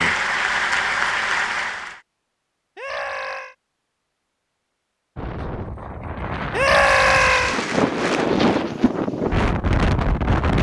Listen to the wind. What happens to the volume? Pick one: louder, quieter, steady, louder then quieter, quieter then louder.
louder.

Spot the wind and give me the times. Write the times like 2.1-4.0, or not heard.
5.2-10.5.